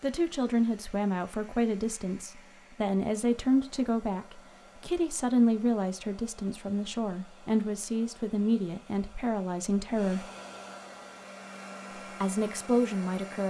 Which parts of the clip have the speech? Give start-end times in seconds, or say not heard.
0.0-10.2, 12.2-13.4.